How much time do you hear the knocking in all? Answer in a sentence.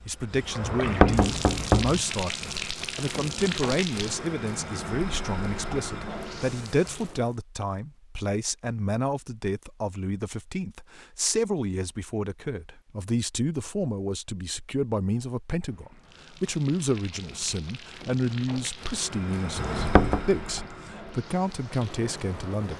The knocking can be heard for 2 seconds in total.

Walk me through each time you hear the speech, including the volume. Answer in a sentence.
The speech can be heard from 0.1 to 22.7 s, at a steady volume.